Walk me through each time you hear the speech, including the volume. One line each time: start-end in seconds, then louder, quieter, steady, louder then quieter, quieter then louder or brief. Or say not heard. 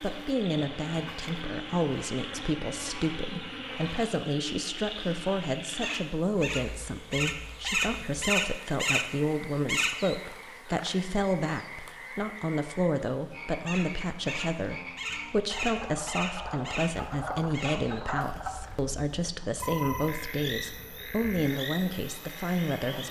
0.0-23.0 steady.